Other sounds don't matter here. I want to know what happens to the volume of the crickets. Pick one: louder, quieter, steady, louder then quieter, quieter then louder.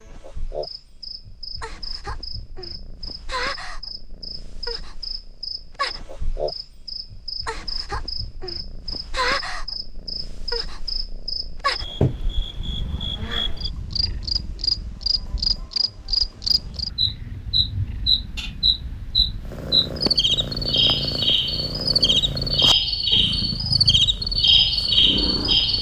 louder.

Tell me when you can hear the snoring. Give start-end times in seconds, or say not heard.
not heard.